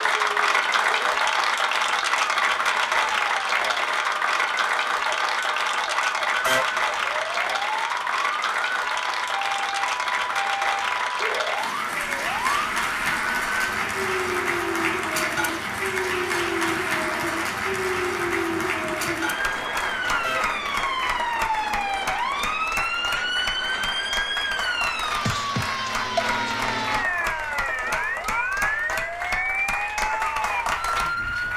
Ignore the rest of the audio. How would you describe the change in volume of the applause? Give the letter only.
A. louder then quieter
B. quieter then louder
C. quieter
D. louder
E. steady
C.